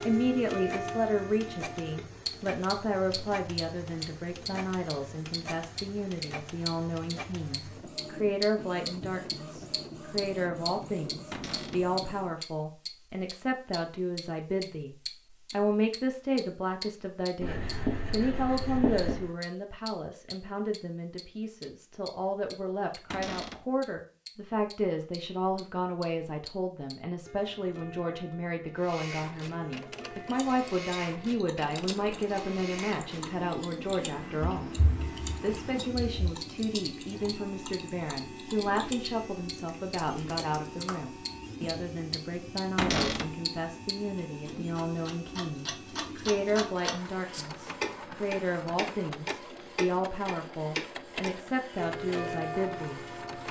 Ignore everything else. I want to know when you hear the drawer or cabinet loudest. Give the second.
43 s.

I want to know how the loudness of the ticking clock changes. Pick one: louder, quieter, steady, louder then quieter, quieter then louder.
quieter then louder.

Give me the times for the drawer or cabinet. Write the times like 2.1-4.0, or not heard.
11.3-11.8, 23.1-23.6, 42.8-43.4.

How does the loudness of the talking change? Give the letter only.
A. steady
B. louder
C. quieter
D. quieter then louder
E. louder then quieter
A.